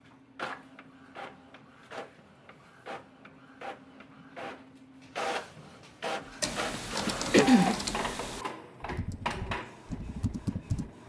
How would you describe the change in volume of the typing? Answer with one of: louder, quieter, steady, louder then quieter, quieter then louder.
quieter then louder.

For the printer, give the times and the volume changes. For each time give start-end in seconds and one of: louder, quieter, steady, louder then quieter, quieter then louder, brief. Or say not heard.
0.0-11.0 louder then quieter.